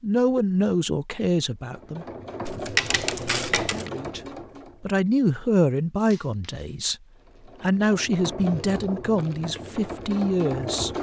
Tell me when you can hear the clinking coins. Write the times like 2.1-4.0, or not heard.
2.5-3.9, 6.1-6.8.